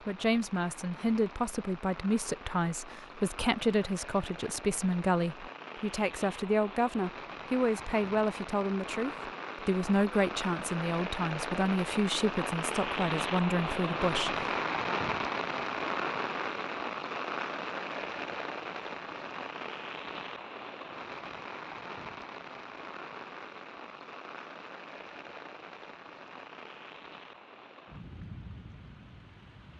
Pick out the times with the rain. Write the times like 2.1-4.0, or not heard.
0.0-29.7.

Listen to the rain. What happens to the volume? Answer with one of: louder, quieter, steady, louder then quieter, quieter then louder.
louder then quieter.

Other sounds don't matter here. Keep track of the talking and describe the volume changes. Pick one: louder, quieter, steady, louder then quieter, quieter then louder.
steady.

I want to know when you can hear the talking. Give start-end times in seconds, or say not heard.
0.1-14.4.